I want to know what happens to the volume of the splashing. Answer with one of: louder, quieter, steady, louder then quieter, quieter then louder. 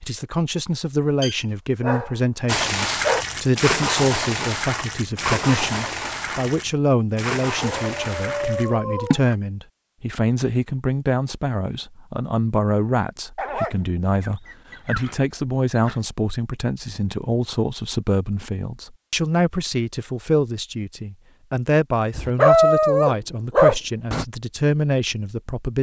quieter.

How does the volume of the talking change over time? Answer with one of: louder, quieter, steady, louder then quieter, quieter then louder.
steady.